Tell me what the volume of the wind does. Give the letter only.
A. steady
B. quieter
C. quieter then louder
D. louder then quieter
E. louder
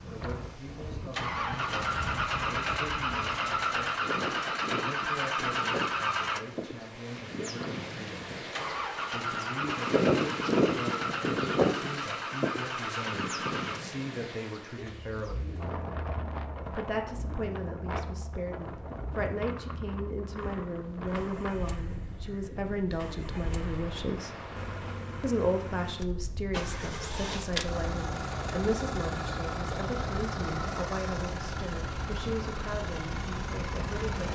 D.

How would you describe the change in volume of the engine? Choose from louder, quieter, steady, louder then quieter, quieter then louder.
quieter then louder.